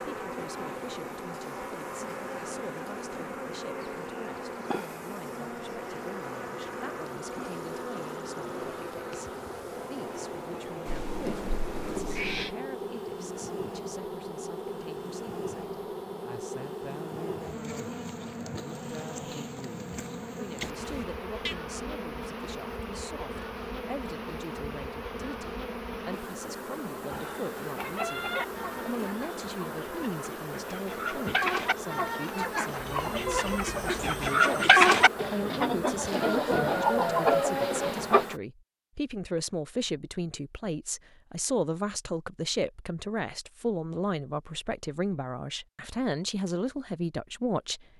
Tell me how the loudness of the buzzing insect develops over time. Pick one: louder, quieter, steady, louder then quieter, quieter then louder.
steady.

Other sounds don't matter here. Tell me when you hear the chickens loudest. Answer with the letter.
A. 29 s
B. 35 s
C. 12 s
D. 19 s
B.